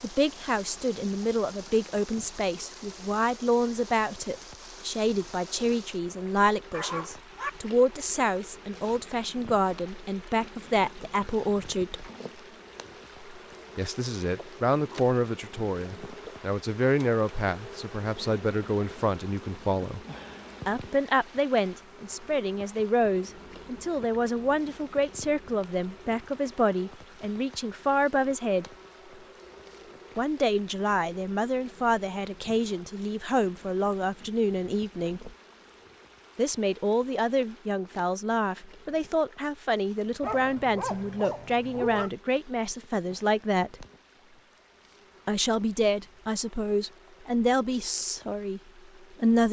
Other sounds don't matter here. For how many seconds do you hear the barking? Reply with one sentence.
The barking can be heard for 3 seconds in total.